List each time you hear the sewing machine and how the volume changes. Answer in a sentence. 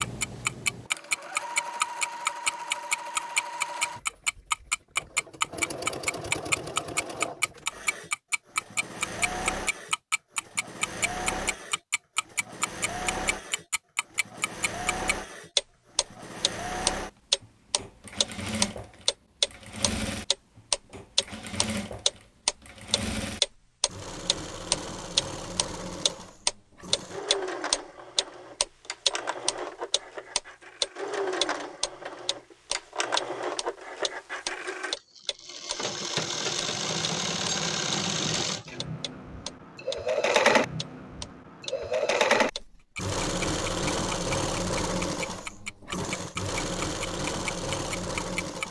The sewing machine can be heard from 0.0 to 48.6 s, getting louder.